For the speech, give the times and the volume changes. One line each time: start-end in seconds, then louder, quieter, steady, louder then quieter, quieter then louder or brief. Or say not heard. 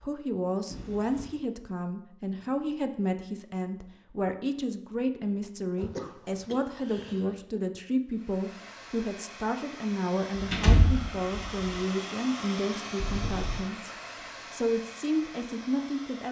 0.0-13.9 steady
14.5-16.2 brief.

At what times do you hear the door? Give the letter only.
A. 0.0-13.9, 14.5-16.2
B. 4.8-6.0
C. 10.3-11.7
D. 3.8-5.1
C.